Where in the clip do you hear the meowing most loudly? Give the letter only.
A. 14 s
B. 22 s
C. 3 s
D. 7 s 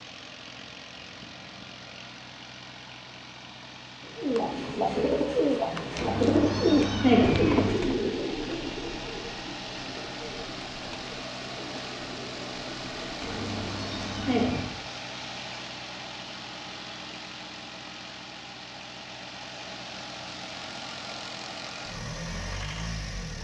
D.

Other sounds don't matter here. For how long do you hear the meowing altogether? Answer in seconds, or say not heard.
3 s.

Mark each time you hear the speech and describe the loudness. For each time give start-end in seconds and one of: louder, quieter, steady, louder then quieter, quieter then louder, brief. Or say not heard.
not heard.